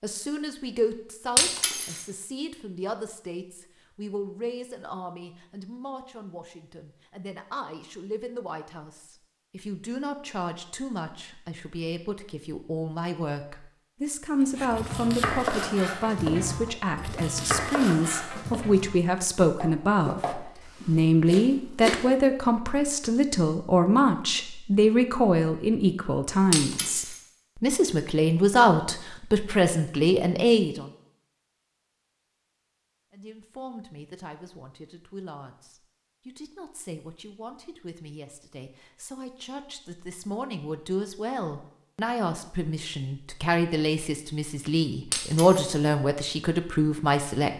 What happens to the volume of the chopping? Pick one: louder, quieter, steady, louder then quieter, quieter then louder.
quieter.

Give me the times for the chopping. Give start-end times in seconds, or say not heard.
14.4-22.1.